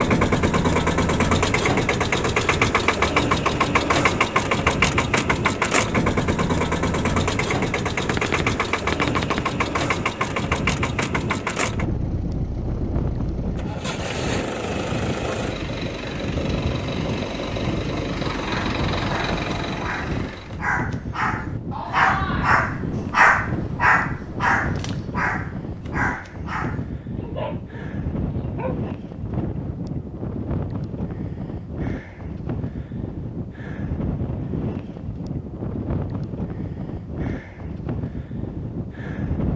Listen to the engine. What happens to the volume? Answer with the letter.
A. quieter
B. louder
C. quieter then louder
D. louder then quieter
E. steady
A.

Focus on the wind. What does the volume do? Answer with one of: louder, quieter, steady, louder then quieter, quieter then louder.
steady.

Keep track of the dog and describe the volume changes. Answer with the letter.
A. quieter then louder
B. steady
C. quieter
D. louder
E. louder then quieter
E.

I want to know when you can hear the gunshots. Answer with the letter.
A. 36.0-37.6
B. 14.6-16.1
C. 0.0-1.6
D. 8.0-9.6
D.